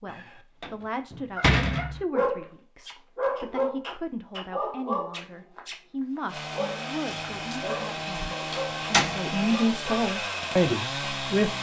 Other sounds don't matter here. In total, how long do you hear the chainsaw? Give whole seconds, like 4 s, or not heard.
5 s.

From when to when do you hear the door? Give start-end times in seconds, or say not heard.
0.1-2.0, 7.1-9.3.